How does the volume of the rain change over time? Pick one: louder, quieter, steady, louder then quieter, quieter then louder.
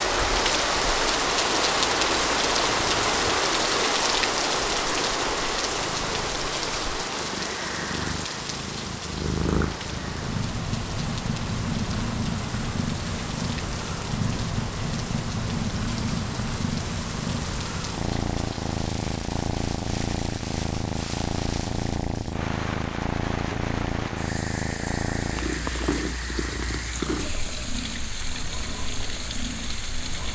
quieter.